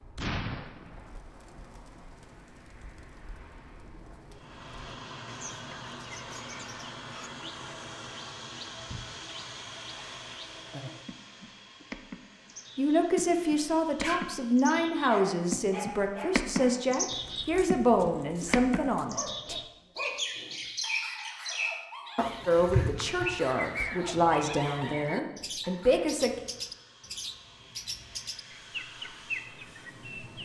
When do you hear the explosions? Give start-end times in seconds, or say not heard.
0.1-1.2.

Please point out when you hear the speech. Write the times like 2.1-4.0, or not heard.
12.8-19.6, 22.4-26.3.